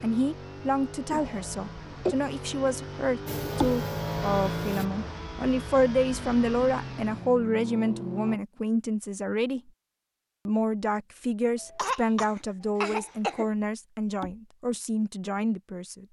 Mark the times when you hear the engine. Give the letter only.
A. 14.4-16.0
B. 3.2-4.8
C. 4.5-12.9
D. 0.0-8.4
D.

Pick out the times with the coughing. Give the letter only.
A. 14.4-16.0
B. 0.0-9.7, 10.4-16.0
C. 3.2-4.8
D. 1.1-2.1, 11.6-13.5
D.